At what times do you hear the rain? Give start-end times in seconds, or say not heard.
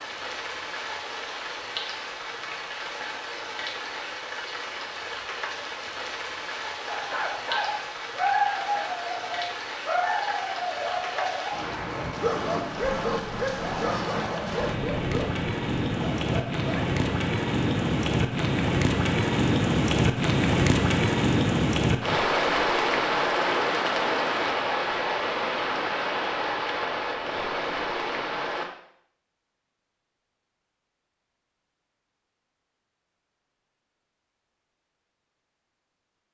0.0-28.6.